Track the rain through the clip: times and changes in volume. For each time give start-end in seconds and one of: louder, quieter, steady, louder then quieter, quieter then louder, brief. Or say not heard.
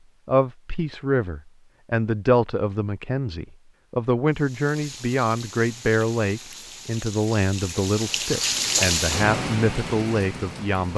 4.3-10.9 louder then quieter.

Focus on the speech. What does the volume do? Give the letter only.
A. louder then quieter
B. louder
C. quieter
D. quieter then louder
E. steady
E.